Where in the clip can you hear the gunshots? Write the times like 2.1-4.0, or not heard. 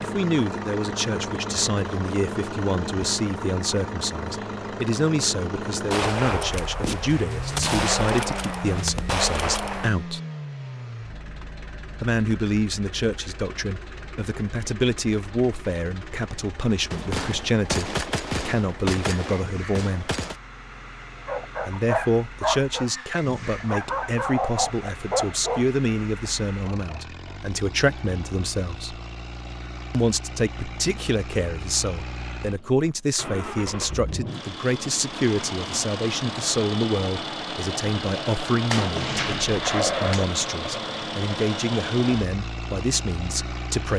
5.9-9.9, 16.9-20.4, 38.7-40.2.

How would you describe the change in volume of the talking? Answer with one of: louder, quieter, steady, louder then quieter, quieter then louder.
steady.